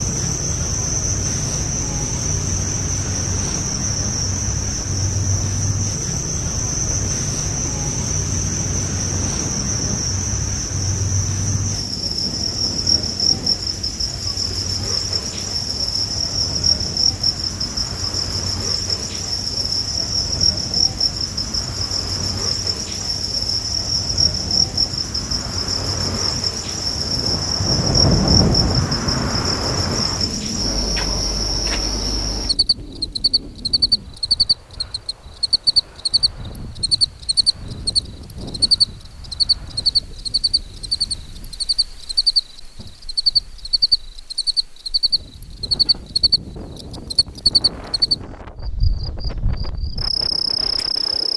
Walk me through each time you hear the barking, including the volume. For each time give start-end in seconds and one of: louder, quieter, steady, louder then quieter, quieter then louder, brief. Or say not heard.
not heard.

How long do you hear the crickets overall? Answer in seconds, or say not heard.
51 s.